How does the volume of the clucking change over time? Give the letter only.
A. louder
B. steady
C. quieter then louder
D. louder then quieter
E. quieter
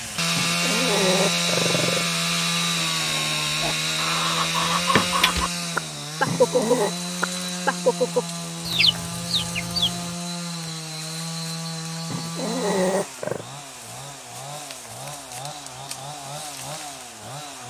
D.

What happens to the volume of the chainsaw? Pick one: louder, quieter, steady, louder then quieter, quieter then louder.
quieter.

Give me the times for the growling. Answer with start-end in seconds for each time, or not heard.
0.3-2.1, 6.2-7.0, 12.1-13.4.